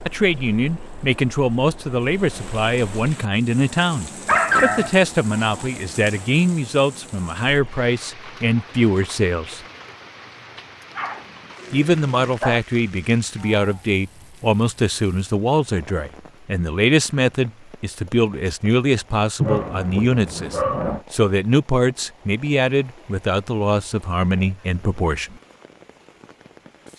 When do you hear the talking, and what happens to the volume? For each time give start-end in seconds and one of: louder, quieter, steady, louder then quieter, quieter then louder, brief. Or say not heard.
0.1-9.6 steady
11.7-25.4 steady.